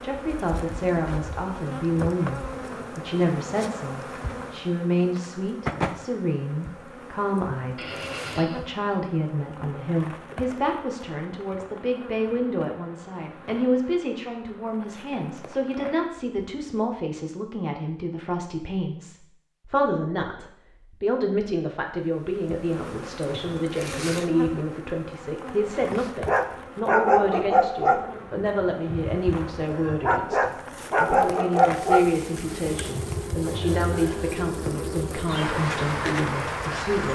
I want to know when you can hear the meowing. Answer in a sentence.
You can't hear the meowing here.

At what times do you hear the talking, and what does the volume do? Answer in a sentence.
The talking can be heard from 0.0 to 37.0 s, at a steady volume.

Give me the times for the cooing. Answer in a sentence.
You can't hear the cooing here.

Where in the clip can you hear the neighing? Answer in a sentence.
The neighing can be heard from 7.8 to 8.7 s.